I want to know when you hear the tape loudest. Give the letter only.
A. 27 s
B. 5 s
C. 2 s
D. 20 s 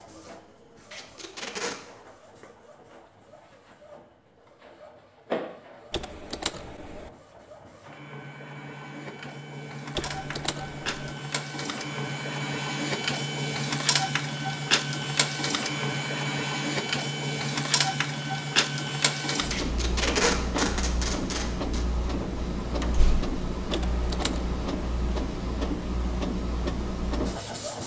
D.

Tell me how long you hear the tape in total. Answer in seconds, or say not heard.
3 s.